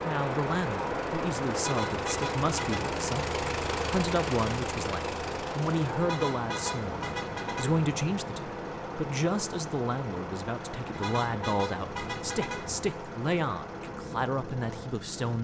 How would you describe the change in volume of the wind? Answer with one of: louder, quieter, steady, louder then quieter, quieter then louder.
quieter.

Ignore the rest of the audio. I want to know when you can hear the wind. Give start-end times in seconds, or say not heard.
0.0-15.3.